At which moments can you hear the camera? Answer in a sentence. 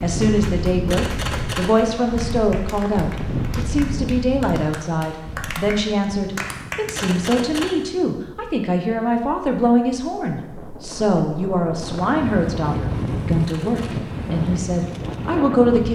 The camera can be heard from 0.9 to 1.9 s, from 7.0 to 7.7 s and from 13.4 to 14.0 s.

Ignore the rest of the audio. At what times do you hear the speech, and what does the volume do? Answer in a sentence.
You can hear the speech from 0.0 to 15.9 s, at a steady volume.